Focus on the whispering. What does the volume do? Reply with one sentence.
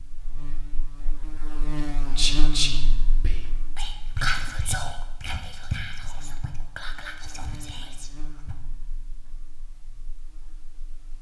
The volume of the whispering goes down.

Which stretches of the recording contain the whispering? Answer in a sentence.
You can hear the whispering from 2.1 to 8.6 s.